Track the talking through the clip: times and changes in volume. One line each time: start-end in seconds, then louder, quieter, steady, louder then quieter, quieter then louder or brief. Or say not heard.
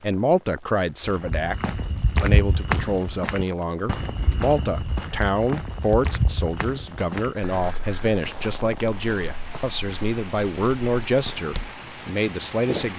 0.0-12.9 steady.